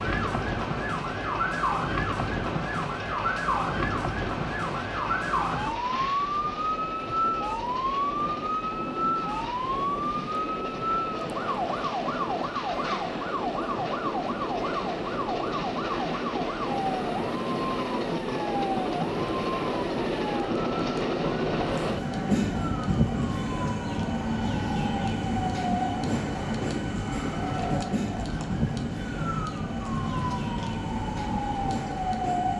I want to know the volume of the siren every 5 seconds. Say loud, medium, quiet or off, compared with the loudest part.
loud, loud, loud, medium, medium, medium, loud.